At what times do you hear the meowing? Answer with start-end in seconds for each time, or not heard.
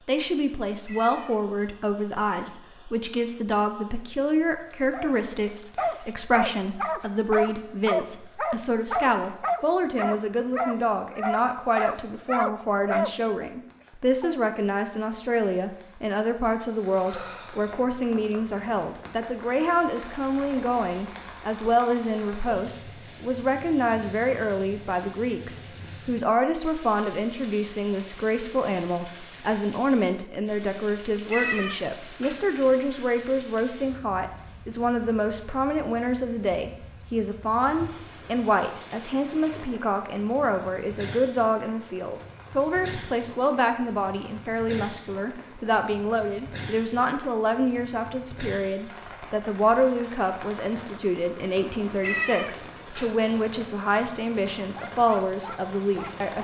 0.8-1.4, 31.3-32.5, 52.0-53.1.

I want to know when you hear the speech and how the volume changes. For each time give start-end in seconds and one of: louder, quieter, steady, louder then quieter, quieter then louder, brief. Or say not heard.
0.1-56.3 steady.